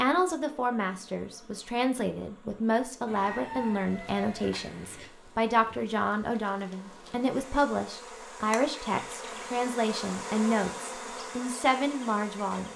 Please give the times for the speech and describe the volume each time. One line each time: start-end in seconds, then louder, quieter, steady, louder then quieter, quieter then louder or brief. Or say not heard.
0.0-12.7 steady.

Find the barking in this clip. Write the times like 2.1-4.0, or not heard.
not heard.